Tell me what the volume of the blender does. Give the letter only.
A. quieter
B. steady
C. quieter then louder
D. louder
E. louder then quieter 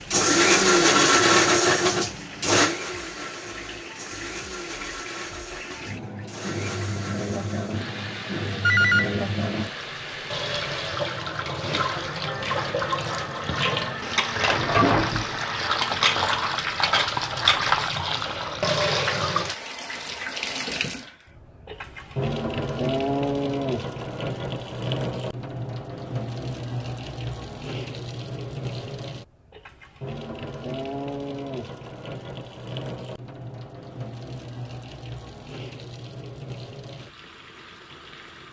A.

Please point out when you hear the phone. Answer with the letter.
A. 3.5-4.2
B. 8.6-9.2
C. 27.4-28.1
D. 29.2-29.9
B.